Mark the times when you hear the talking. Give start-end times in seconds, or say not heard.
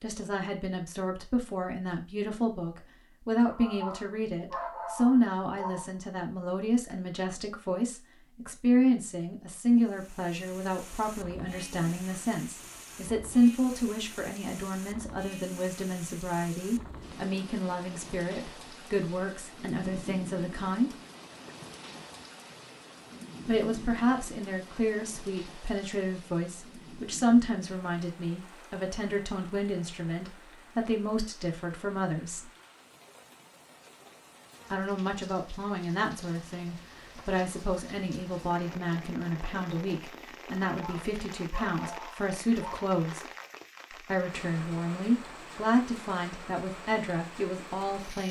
0.0-20.9, 23.4-32.5, 34.7-43.2, 44.0-48.2.